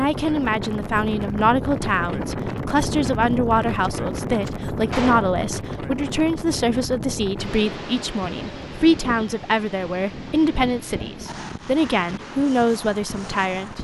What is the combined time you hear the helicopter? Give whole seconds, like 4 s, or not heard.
not heard.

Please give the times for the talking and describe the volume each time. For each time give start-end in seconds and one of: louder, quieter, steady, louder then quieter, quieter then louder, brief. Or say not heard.
0.0-13.7 steady.